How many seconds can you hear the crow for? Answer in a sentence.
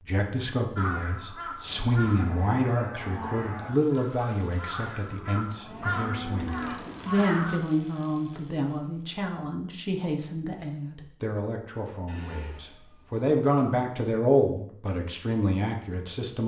You can hear the crow for 7 seconds altogether.